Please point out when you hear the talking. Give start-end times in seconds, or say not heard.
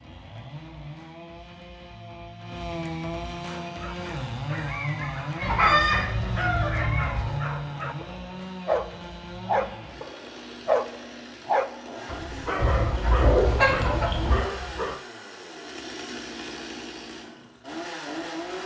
not heard.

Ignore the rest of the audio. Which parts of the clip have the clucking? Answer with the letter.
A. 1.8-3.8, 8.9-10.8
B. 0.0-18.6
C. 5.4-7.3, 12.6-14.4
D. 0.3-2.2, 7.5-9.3
C.